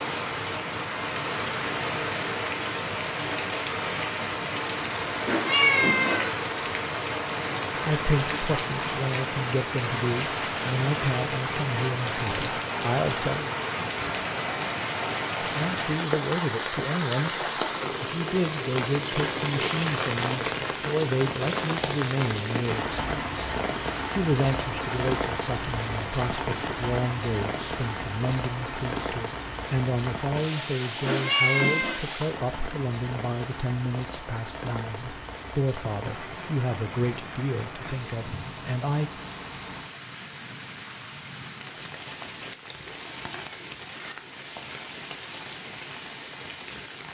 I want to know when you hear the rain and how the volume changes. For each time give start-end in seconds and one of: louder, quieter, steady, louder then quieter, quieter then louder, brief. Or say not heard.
0.0-47.0 quieter.